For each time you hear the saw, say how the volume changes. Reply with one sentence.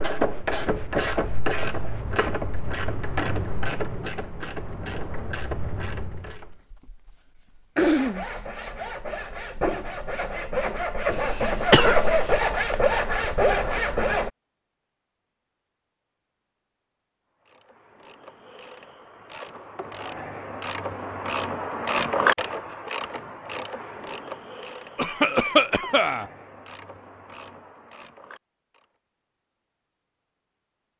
You can hear the saw from 7.8 to 14.3 s, getting louder.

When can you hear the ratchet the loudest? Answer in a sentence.
The volume of the ratchet peaks at 22 seconds.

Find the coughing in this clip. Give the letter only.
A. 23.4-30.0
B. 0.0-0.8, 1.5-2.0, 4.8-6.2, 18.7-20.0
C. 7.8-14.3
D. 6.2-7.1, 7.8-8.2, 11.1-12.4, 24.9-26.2
D.